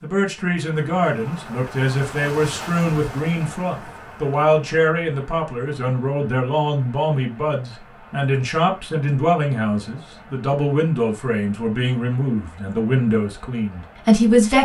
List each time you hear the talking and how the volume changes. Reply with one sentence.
You can hear the talking from 0.0 to 14.5 s, at a steady volume.